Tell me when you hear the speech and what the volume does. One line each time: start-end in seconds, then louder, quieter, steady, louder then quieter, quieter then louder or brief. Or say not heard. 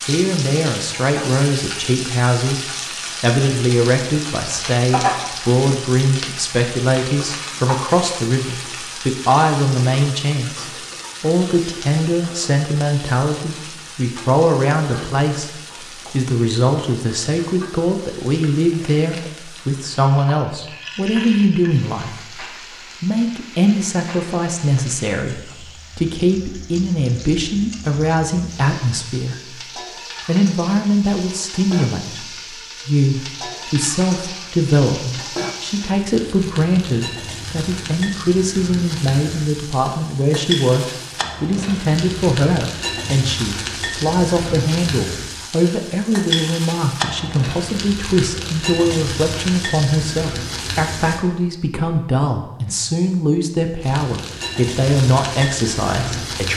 0.1-29.6 steady
30.2-56.5 steady.